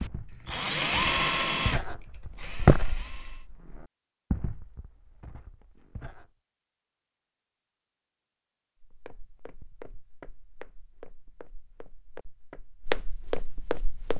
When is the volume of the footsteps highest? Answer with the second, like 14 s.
3 s.